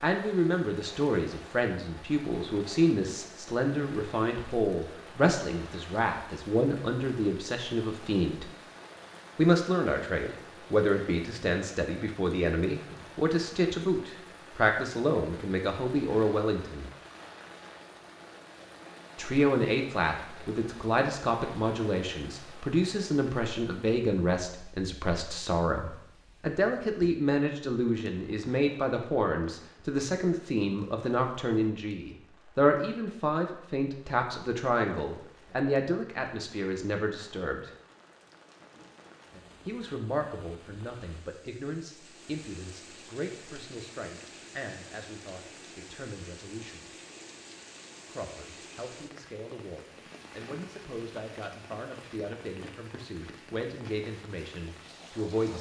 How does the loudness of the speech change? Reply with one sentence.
The loudness of the speech goes down.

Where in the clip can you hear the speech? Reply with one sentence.
You can hear the speech from 0.0 to 8.5 s, from 9.3 to 16.9 s, from 19.1 to 37.7 s, from 39.6 to 46.9 s and from 48.0 to 55.5 s.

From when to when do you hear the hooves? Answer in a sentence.
You can't hear the hooves here.